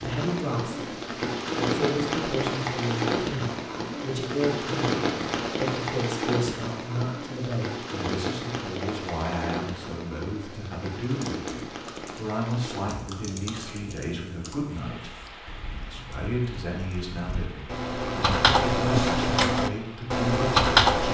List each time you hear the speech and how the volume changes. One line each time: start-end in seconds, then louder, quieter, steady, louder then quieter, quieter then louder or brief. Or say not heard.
0.0-0.9 brief
1.6-21.1 steady.